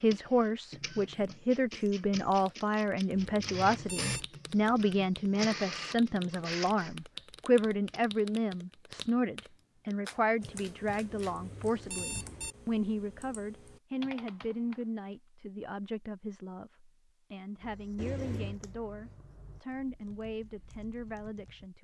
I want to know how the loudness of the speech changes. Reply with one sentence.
The volume of the speech goes down.